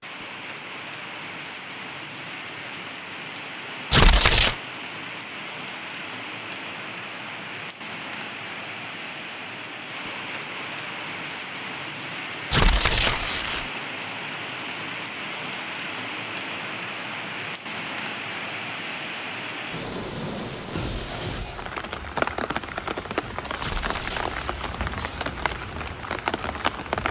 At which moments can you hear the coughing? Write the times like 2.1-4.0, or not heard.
not heard.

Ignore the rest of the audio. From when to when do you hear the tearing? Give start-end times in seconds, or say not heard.
3.9-4.5, 12.5-13.7, 23.6-24.8.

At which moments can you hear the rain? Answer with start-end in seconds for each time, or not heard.
0.0-27.0.